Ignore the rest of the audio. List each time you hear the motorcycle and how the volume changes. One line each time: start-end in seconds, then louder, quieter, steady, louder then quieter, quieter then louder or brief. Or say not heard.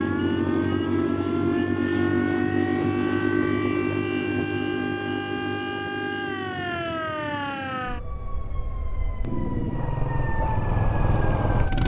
0.0-11.8 quieter then louder.